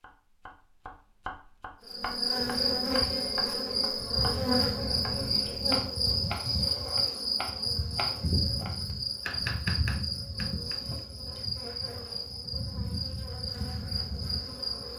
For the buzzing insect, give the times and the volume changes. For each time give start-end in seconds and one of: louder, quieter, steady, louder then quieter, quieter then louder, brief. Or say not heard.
1.9-14.9 quieter.